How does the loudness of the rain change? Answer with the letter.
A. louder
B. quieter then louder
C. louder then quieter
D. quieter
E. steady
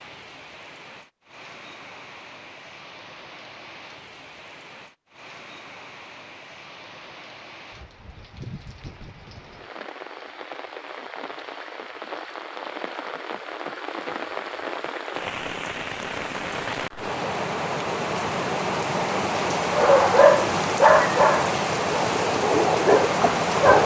A.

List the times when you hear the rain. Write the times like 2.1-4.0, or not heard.
0.0-23.8.